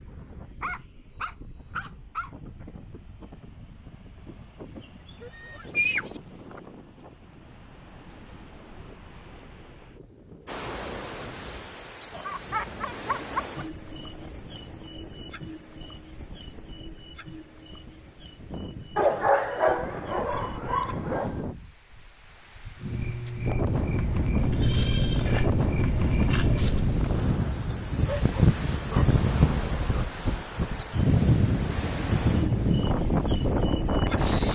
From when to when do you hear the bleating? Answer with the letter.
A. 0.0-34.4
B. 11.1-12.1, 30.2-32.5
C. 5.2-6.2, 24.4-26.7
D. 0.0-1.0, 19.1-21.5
C.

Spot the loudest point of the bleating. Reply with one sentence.
The volume of the bleating peaks at 6 seconds.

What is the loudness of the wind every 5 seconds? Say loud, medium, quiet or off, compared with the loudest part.
quiet, quiet, quiet, quiet, medium, loud, loud.